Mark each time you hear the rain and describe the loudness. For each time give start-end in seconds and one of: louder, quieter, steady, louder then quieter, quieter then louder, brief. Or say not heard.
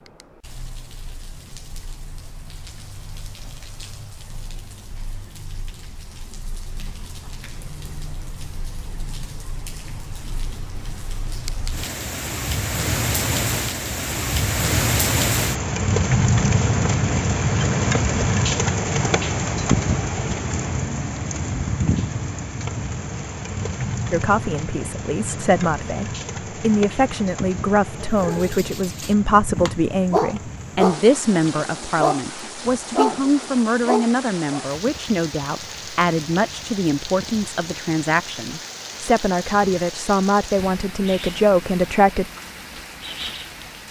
0.0-43.8 louder then quieter.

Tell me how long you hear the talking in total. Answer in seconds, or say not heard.
18 s.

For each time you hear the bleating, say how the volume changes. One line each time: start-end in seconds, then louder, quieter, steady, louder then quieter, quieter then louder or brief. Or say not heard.
not heard.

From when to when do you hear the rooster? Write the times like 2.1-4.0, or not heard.
not heard.